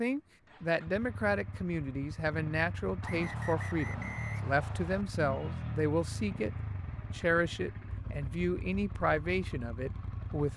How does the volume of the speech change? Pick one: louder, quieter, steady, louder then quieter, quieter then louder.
steady.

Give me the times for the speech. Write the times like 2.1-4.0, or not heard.
0.0-6.5, 7.2-10.5.